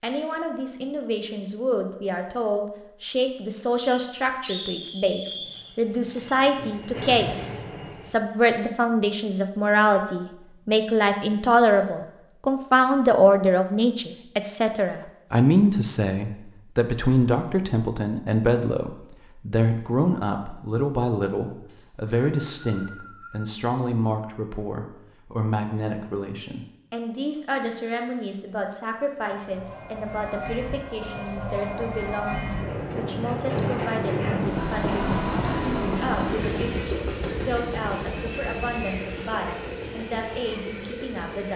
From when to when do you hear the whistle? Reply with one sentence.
You can hear the whistle from 3.9 to 5.7 s, from 21.6 to 23.5 s and from 38.1 to 39.2 s.